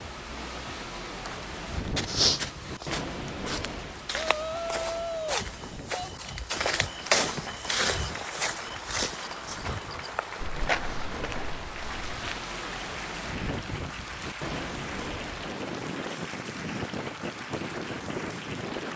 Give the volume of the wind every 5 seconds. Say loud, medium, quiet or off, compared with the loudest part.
loud, medium, loud, loud.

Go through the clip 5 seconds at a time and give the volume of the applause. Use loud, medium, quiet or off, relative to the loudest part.
off, loud, loud, loud.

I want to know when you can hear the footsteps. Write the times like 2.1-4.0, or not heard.
1.1-12.4.